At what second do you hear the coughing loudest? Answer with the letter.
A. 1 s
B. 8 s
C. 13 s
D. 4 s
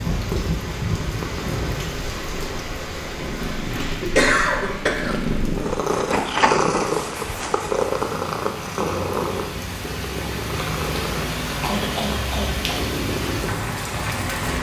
D.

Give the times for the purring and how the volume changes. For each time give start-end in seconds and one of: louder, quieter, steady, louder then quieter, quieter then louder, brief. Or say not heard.
0.1-14.5 louder then quieter.